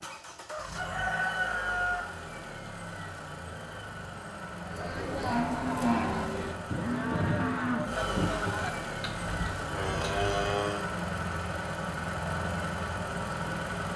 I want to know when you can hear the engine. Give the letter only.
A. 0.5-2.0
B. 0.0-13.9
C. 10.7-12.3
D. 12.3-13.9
B.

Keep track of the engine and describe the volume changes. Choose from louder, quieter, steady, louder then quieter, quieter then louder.
louder.